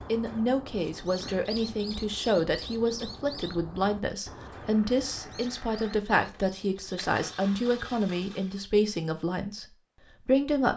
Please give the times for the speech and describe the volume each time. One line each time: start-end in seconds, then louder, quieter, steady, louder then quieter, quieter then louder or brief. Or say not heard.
0.1-10.7 steady.